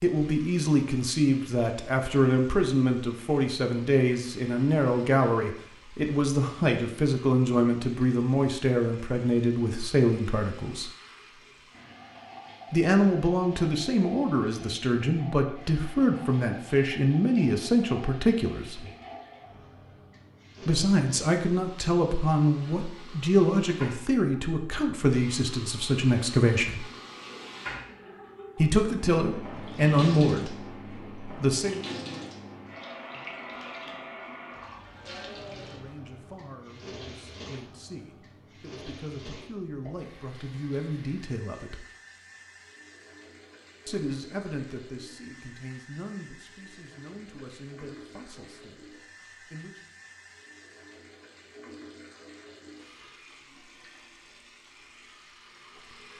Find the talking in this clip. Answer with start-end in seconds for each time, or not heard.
0.0-10.9, 12.7-18.9, 20.6-26.9, 28.6-31.9, 35.6-41.9, 43.9-49.8.